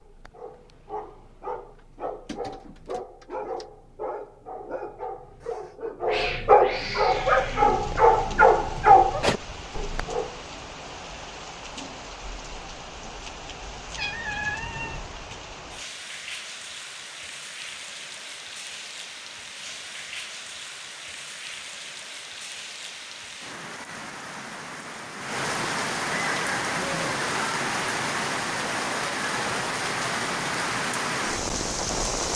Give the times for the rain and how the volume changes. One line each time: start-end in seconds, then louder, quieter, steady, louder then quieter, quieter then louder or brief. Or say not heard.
7.0-32.3 louder.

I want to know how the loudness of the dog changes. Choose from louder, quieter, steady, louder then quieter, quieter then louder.
louder.